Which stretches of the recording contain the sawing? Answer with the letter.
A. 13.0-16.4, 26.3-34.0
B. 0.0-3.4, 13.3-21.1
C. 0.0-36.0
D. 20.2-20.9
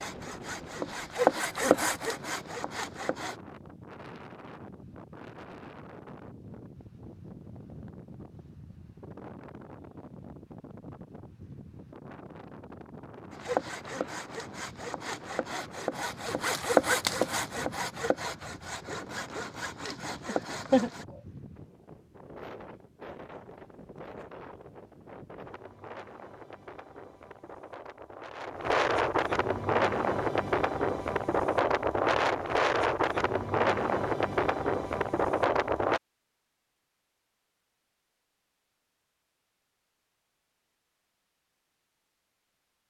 B.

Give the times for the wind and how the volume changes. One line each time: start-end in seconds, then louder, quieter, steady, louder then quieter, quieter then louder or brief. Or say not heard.
0.0-36.0 louder.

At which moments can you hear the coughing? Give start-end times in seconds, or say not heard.
20.2-20.9.